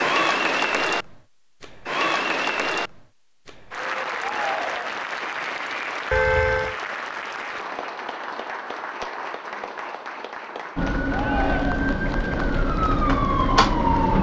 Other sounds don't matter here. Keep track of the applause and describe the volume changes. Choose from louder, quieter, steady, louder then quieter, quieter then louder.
quieter.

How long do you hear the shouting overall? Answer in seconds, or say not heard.
2 s.